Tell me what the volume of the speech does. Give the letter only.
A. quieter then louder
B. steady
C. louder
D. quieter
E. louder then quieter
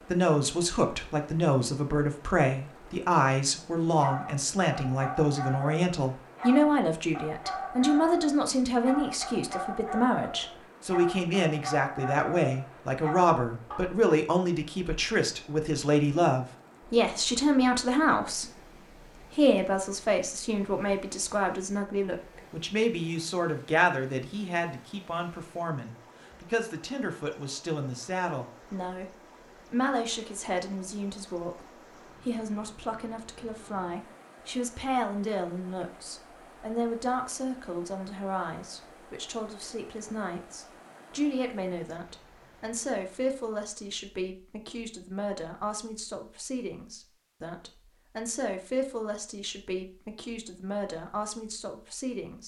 D.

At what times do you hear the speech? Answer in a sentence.
The speech can be heard from 0.1 to 52.4 s.